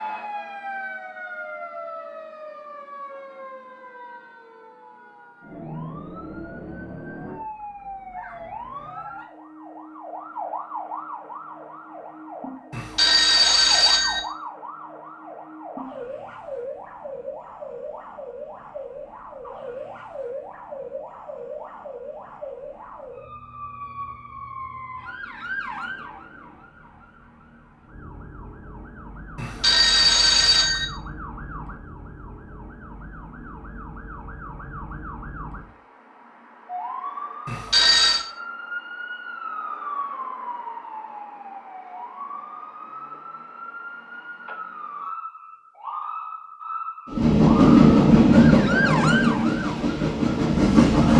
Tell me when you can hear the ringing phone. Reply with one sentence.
The ringing phone can be heard from 12.7 to 14.2 s, from 29.4 to 30.9 s and from 37.5 to 38.2 s.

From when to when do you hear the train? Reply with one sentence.
You can hear the train from 47.1 to 51.1 s.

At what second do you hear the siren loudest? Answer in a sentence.
The loudest moment of the siren is at 49 seconds.